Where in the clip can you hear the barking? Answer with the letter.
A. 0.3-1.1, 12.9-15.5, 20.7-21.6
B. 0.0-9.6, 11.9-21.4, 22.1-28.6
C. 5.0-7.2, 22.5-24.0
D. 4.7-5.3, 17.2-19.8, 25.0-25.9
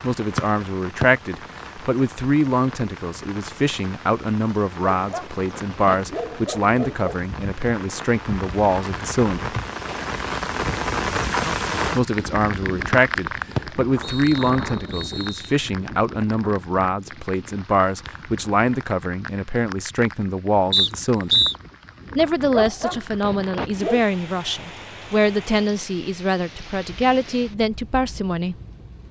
C.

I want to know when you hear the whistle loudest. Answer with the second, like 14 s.
21 s.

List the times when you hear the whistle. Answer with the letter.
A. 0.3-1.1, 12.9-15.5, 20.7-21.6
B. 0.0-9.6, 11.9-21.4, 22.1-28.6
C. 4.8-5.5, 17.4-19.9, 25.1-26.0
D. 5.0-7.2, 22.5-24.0
A.